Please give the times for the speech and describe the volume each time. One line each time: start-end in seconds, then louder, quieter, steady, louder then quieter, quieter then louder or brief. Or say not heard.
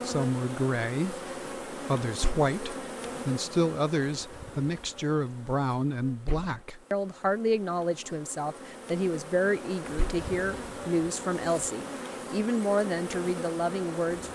0.0-14.3 steady.